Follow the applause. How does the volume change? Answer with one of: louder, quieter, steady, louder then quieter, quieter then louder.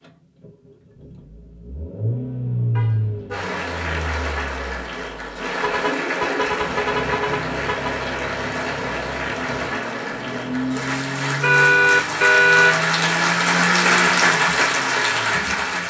louder.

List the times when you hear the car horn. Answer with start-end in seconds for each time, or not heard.
2.8-3.5, 5.5-8.0, 11.4-12.8.